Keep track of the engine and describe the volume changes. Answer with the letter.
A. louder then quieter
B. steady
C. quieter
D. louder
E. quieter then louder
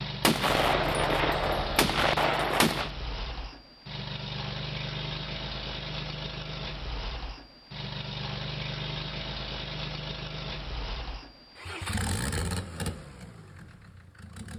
B.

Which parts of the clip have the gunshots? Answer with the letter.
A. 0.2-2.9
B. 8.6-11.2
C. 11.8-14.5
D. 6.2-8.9
A.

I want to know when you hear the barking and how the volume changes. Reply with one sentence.
You can't hear the barking here.